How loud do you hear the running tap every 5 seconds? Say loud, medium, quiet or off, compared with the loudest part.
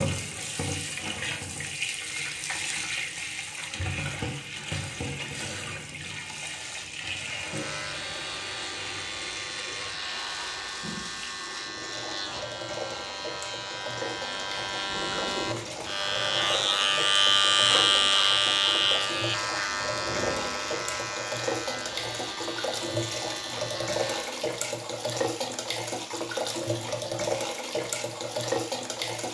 loud, medium, medium, medium, loud, loud.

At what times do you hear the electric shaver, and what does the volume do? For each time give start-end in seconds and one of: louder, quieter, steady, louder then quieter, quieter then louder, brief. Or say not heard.
7.4-24.4 louder then quieter.